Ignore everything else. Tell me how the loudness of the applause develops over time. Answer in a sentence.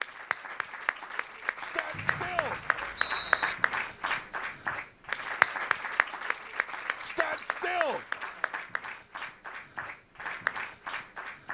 The volume of the applause goes up, then down.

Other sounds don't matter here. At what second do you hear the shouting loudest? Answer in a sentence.
The volume of the shouting peaks at 8 seconds.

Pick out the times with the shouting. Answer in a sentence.
You can hear the shouting from 1.6 to 2.6 s and from 7.0 to 8.1 s.